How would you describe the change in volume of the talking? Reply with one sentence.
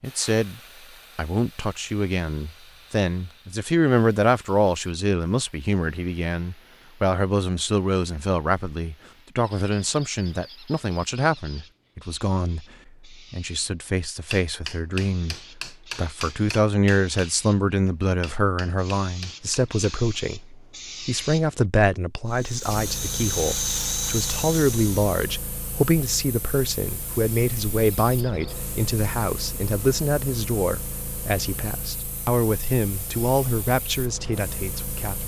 The loudness of the talking stays about the same.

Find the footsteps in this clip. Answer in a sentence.
The footsteps can't be heard in this clip.